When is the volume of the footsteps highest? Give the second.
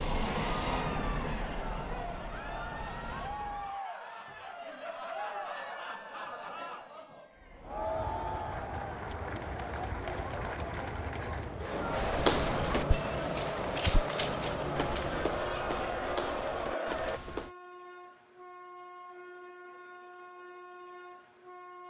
12 s.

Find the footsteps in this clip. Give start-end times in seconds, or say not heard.
11.9-17.5.